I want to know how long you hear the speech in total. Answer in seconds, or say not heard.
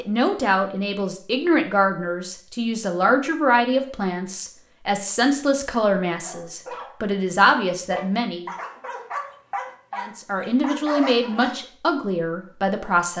12 s.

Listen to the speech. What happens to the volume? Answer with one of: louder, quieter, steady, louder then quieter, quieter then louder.
steady.